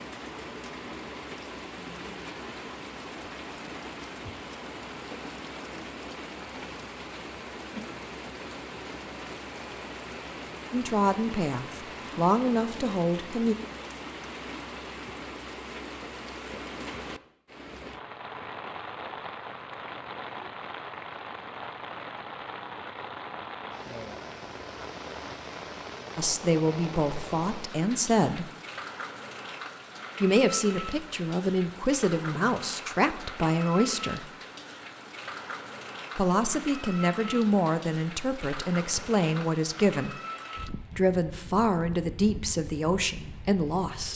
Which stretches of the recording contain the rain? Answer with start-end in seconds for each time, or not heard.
0.0-44.1.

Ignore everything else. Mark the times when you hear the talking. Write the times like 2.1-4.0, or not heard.
10.7-13.6, 26.1-28.4, 30.2-34.3, 36.1-40.1, 41.0-44.1.